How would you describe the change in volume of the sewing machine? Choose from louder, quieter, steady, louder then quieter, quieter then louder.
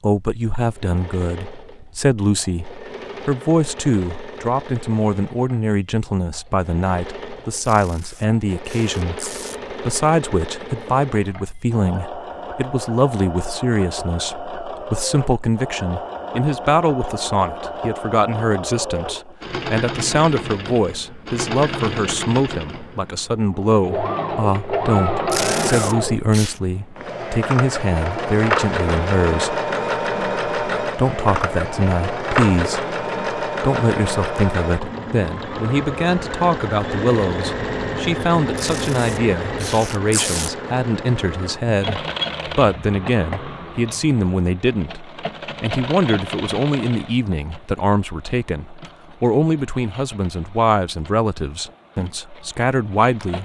louder then quieter.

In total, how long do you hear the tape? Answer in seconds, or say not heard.
5 s.